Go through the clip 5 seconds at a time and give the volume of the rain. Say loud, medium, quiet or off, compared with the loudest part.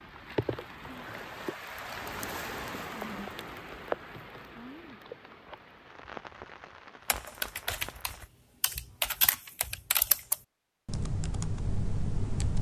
loud, medium, off.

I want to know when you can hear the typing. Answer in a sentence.
The typing can be heard from 7.0 to 12.5 s.